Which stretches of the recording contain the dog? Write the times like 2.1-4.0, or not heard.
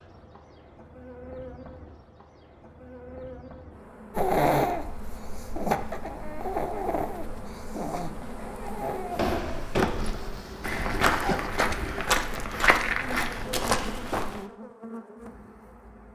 4.1-11.5.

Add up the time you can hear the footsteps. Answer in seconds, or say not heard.
5 s.